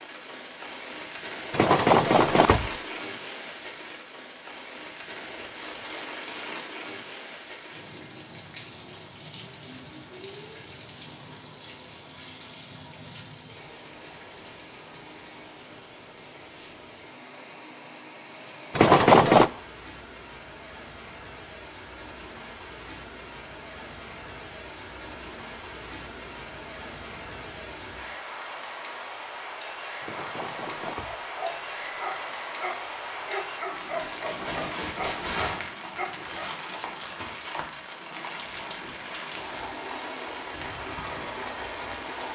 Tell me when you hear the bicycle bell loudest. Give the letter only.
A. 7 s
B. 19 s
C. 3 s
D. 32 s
B.